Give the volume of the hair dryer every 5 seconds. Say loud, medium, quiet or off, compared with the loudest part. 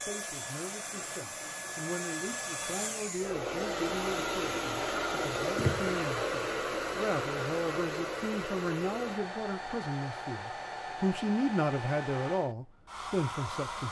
loud, loud, medium.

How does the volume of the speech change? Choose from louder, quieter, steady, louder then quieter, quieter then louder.
louder.